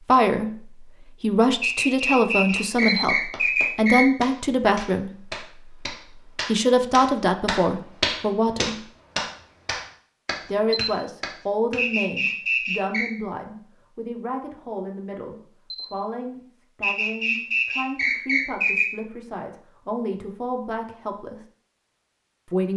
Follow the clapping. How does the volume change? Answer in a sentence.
The volume of the clapping goes up, then down.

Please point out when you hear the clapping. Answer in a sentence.
The clapping can be heard from 2.5 to 11.8 s.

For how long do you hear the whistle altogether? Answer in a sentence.
The whistle can be heard for 6 seconds in total.